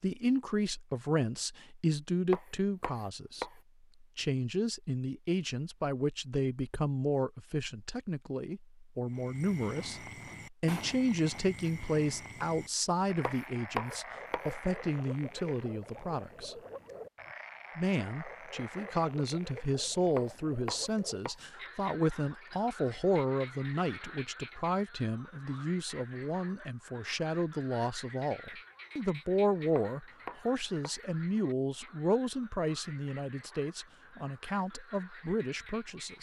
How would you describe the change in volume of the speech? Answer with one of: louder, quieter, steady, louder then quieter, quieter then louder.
steady.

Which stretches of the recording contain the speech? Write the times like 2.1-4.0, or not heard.
0.0-16.6, 17.8-36.1.